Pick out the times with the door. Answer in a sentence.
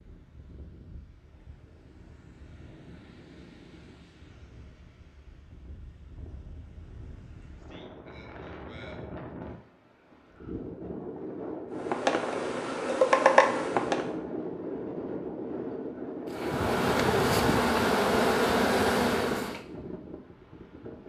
You can't hear the door here.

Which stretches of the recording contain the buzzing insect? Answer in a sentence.
You can hear the buzzing insect from 11.8 to 14.1 s and from 16.3 to 19.6 s.